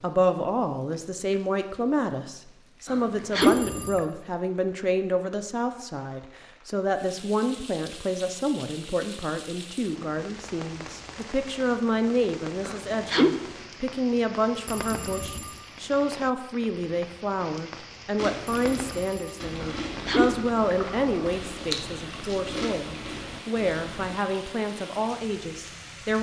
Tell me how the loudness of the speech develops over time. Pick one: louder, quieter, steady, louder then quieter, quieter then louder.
steady.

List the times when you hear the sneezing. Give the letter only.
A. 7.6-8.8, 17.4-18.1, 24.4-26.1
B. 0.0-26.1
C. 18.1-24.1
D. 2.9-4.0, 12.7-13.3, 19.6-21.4
D.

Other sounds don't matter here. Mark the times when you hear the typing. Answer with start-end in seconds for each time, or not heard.
not heard.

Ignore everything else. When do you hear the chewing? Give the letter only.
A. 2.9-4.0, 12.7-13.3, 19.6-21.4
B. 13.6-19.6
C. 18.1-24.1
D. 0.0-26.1
C.